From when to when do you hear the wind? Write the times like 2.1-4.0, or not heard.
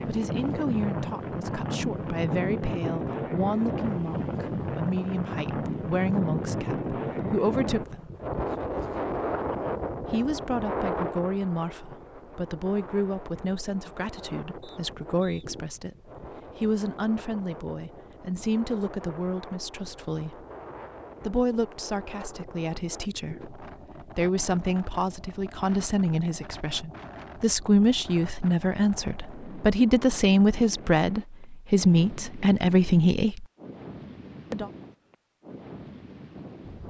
0.0-36.8.